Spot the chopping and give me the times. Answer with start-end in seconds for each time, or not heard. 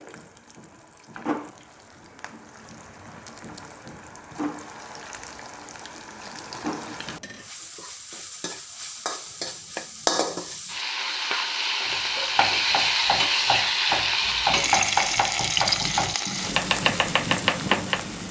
11.8-18.1.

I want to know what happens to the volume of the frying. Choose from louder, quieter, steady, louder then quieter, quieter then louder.
louder.